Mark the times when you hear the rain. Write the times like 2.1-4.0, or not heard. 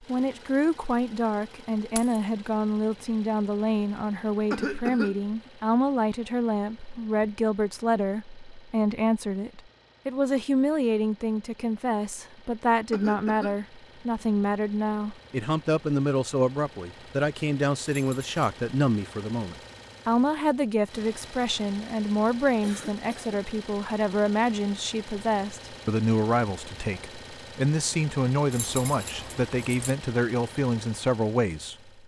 not heard.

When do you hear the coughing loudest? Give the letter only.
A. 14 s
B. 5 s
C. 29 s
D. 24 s
B.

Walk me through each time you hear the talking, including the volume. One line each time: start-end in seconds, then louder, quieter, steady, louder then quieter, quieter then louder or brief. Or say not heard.
0.1-31.9 steady.